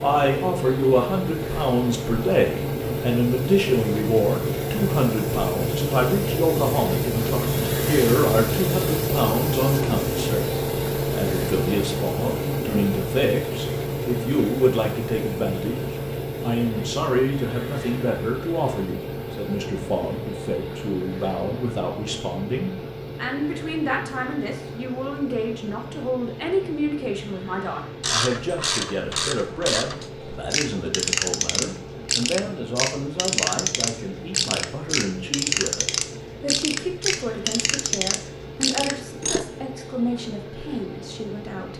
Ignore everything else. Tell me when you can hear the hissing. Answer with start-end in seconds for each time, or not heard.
0.0-41.7.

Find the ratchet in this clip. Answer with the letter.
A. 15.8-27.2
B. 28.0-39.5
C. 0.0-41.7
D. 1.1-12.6
B.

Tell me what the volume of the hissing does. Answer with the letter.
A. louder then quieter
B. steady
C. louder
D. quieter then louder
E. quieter
E.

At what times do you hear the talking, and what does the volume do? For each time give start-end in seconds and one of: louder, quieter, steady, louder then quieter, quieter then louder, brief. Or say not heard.
0.0-41.7 quieter.